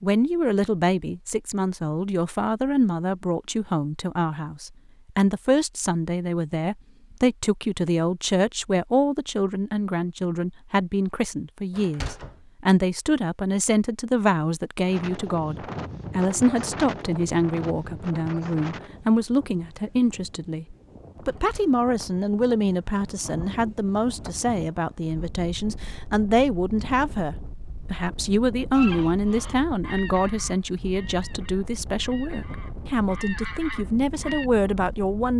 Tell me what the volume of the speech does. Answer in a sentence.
The volume of the speech stays about the same.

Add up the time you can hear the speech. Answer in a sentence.
You can hear the speech for 35 seconds altogether.